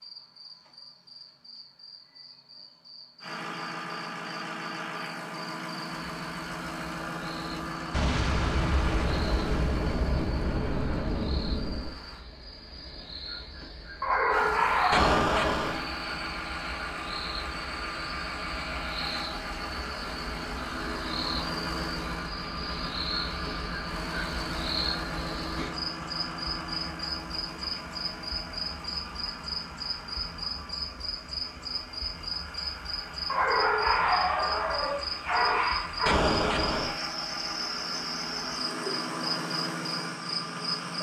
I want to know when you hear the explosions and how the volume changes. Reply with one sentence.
The explosions can be heard from 7.9 to 11.9 s, at a steady volume; briefly from 14.9 to 15.8 s; and briefly from 36.0 to 37.0 s.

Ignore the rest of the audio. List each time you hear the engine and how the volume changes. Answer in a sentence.
The engine can be heard from 3.2 to 12.2 s, getting quieter; and from 14.3 to 40.9 s, getting quieter then louder.